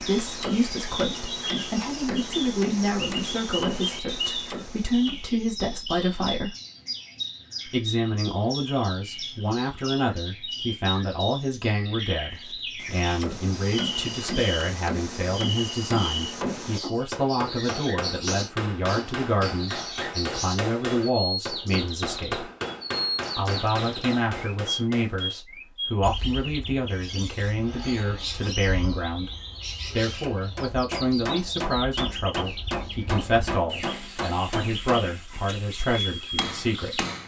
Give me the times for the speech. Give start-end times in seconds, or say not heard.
0.0-6.5, 7.7-22.5, 23.4-29.3, 29.9-37.0.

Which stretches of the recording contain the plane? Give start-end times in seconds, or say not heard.
not heard.